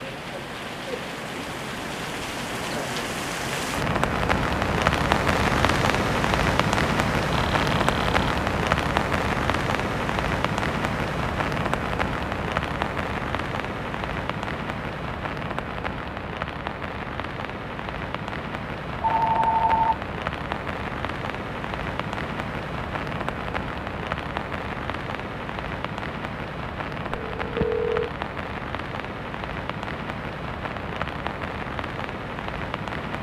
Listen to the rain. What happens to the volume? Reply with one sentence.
The loudness of the rain goes down.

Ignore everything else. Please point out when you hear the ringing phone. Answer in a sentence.
The ringing phone can be heard from 7.3 to 8.3 s, from 19.0 to 19.9 s and from 27.1 to 28.1 s.